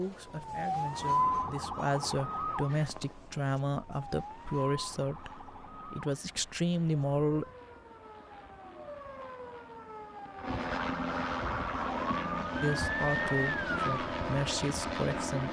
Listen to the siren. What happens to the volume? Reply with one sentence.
The volume of the siren goes down, then up.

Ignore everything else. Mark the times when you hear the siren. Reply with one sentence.
The siren can be heard from 0.0 to 13.9 s.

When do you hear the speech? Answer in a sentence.
The speech can be heard from 0.0 to 7.5 s and from 12.6 to 15.4 s.